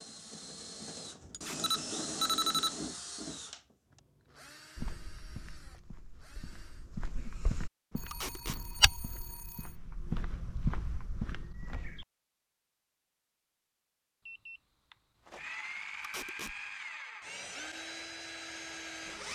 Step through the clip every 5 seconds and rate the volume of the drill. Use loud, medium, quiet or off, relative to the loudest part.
loud, quiet, off, loud.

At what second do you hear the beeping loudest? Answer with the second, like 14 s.
2 s.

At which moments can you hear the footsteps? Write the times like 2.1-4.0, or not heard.
4.8-12.1.